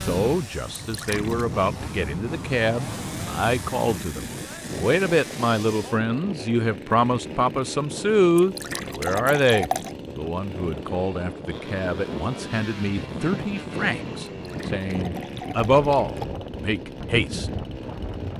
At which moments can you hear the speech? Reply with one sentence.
The speech can be heard from 0.0 to 17.5 s.